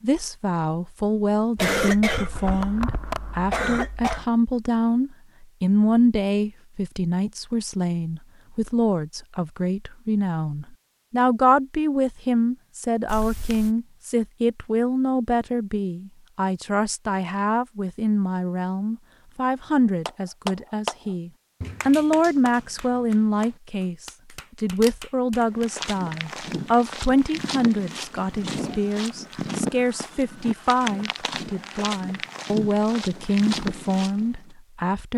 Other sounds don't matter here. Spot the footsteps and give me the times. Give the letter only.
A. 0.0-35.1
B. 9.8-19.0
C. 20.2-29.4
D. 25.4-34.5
D.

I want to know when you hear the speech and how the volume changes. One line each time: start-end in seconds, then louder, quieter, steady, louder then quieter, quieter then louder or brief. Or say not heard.
0.0-35.1 steady.